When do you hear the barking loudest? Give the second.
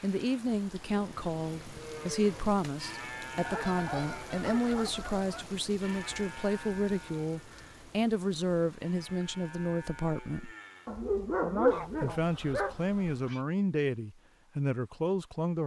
12 s.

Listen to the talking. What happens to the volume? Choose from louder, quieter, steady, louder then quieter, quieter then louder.
steady.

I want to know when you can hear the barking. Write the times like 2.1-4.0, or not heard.
3.5-5.1, 10.8-12.8.